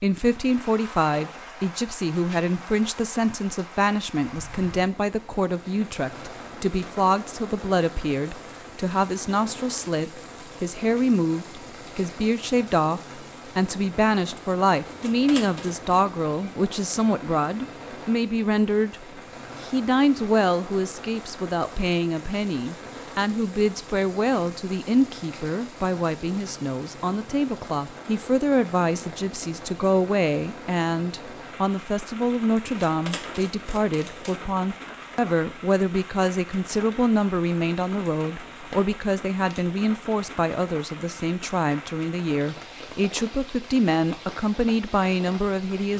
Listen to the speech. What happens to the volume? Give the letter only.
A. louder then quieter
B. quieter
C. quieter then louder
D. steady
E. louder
D.